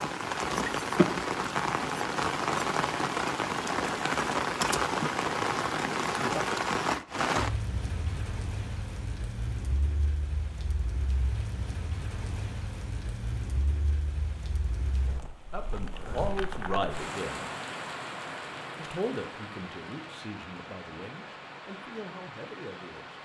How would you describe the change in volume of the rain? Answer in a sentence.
The volume of the rain goes down.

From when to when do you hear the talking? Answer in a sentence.
The talking can be heard from 15.5 to 17.5 s and from 18.8 to 23.2 s.